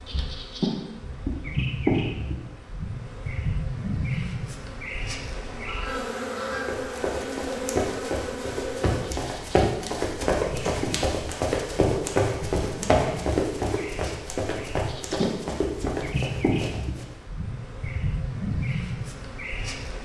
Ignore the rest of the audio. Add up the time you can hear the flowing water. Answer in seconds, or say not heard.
not heard.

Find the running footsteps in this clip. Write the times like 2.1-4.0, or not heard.
6.6-17.1.